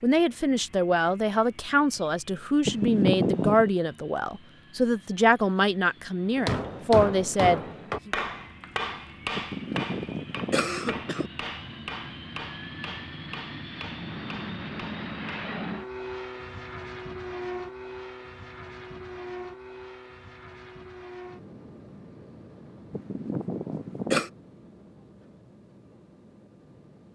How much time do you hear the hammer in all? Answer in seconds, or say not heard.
9 s.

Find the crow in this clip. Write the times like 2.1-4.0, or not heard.
not heard.